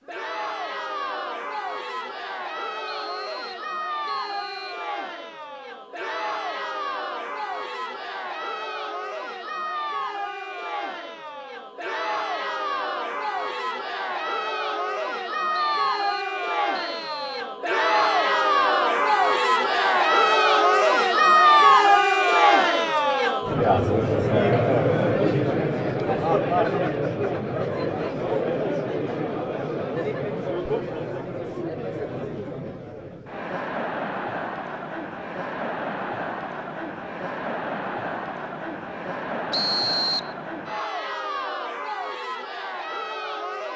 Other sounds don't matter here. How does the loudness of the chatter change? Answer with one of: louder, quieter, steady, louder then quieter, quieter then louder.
louder then quieter.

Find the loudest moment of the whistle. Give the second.
40 s.